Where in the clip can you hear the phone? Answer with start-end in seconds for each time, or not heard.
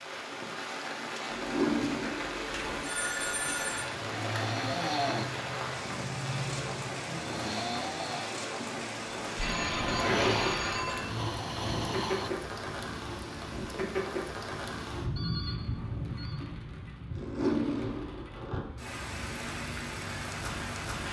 2.5-3.9, 9.3-11.1, 15.2-16.4.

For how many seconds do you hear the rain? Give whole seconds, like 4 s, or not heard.
21 s.